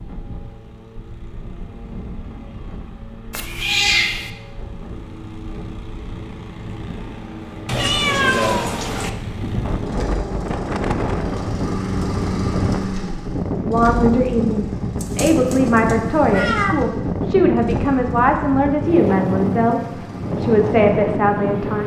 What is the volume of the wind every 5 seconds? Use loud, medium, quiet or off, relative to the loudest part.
quiet, medium, loud, loud, loud.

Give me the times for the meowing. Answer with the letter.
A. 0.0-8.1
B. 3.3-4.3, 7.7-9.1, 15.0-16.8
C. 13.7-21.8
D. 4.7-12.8
B.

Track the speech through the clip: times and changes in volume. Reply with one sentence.
You can hear the speech from 13.7 to 21.8 s, at a steady volume.